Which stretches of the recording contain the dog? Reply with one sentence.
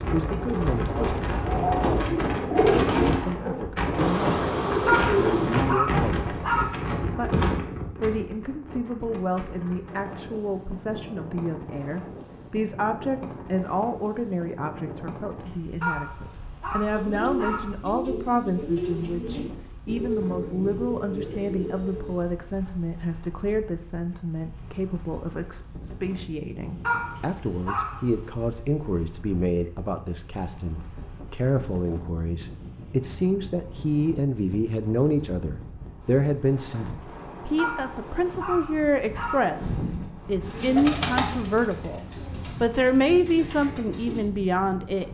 The dog can be heard from 4.8 to 6.8 s, from 15.8 to 17.7 s, from 26.9 to 28.1 s and from 37.5 to 39.4 s.